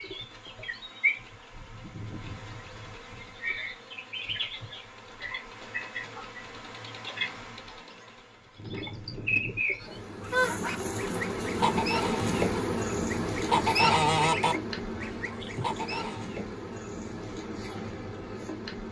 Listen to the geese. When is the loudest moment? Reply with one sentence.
The loudest moment of the geese is at 14 seconds.